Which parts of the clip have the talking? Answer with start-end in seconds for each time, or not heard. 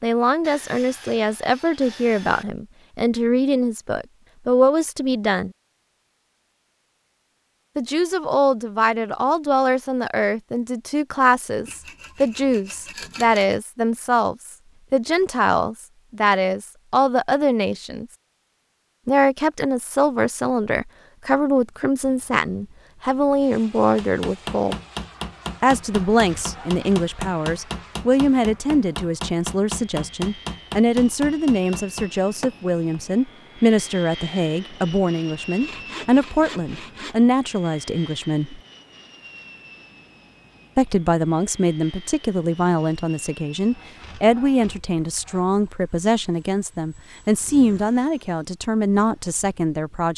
0.0-5.5, 7.8-18.1, 19.1-24.8, 25.6-38.6, 40.8-50.1.